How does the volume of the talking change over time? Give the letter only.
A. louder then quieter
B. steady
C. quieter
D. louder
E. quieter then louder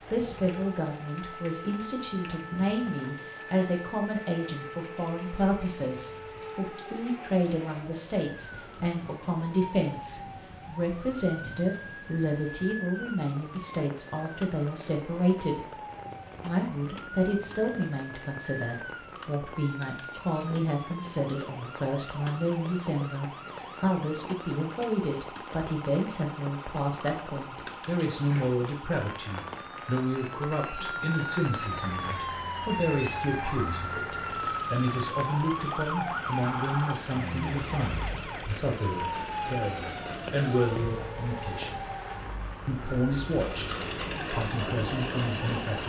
B.